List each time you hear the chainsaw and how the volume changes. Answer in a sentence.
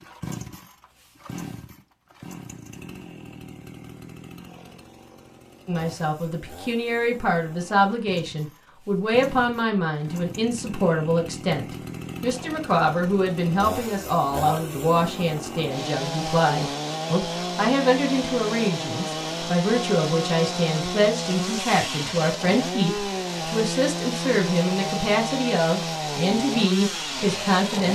The chainsaw can be heard from 0.0 to 27.9 s, getting louder.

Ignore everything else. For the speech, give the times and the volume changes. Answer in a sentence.
You can hear the speech from 5.7 to 27.9 s, at a steady volume.